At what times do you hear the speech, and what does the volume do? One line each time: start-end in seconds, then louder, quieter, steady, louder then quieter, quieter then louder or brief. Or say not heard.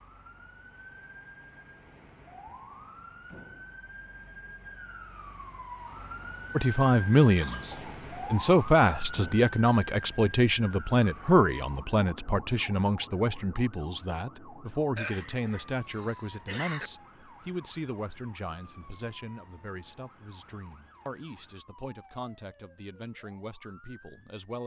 6.5-24.6 quieter.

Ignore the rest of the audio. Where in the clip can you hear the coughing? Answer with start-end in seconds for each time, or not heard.
7.4-8.0, 14.9-16.9.